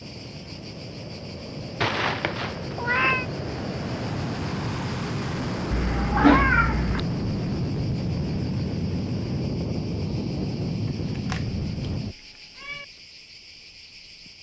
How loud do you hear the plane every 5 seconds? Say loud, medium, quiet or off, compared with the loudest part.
medium, loud, loud.